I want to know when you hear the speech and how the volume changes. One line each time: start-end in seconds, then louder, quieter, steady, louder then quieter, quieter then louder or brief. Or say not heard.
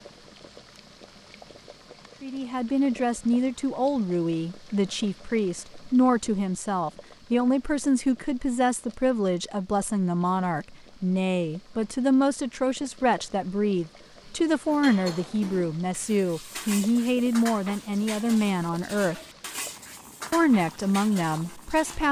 2.2-19.1 steady
20.3-22.0 brief.